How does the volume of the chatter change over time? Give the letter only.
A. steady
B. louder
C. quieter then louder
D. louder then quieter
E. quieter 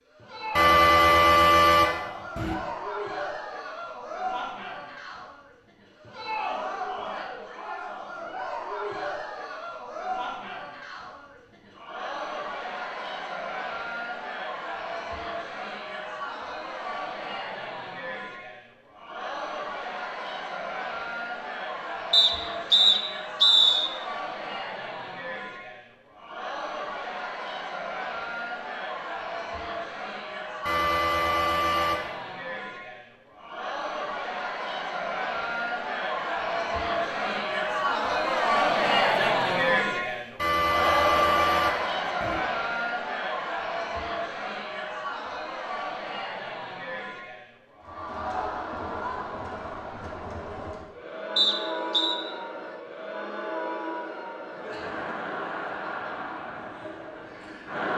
D.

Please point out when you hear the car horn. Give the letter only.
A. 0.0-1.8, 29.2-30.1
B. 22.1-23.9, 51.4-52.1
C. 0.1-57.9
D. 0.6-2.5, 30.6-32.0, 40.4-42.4
D.